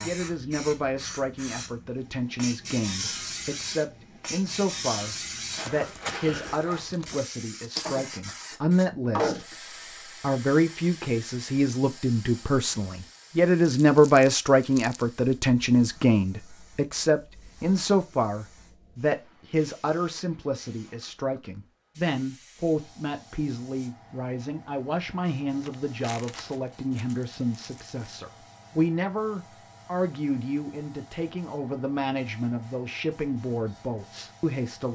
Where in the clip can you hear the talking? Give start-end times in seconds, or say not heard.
0.0-34.9.